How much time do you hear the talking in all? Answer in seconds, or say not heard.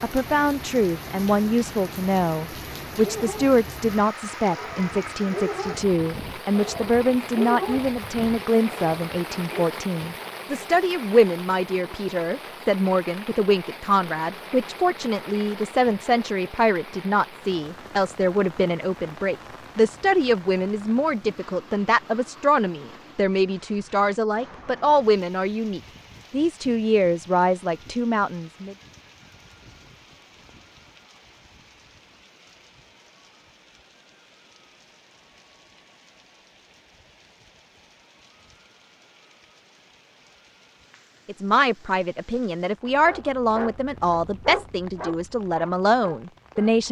34 s.